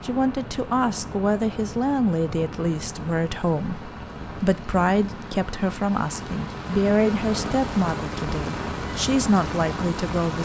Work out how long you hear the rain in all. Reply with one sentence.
The rain can be heard for 10 seconds in total.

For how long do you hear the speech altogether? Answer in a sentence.
The speech can be heard for 10 seconds in total.